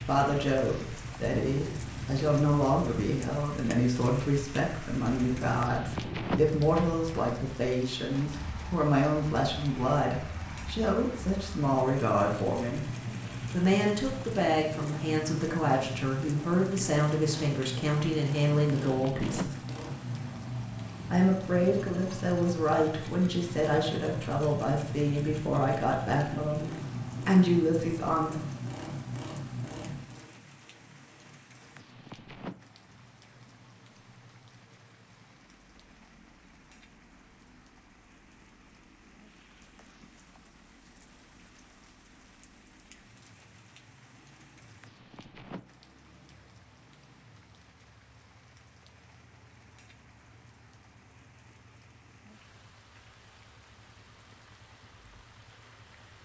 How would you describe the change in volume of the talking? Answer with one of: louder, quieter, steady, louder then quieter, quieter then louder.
steady.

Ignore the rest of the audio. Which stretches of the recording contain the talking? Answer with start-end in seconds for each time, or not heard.
0.0-12.8, 13.5-19.6, 21.1-28.4.